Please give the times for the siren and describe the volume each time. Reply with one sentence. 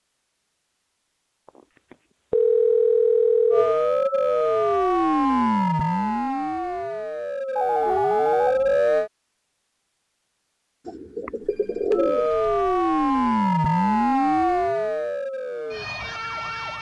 You can hear the siren from 3.5 to 9.1 s, getting quieter then louder; and from 11.9 to 16.7 s, getting quieter.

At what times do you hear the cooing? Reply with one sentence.
You can hear the cooing from 10.8 to 12.3 s.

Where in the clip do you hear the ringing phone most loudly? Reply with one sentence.
The volume of the ringing phone peaks at 3 seconds.